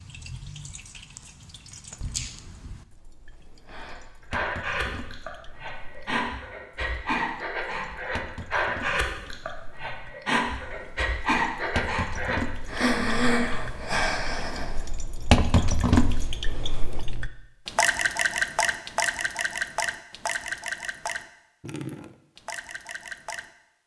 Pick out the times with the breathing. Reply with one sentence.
The breathing can be heard from 3.6 to 14.9 s.